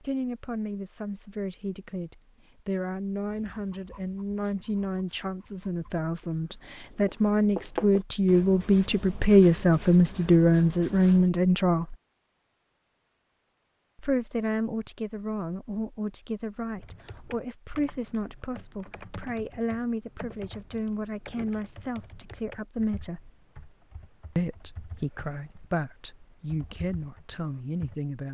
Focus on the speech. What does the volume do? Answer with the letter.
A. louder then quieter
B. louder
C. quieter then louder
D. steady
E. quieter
A.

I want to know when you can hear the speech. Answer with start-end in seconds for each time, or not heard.
0.0-11.9, 13.9-23.3, 24.4-28.2.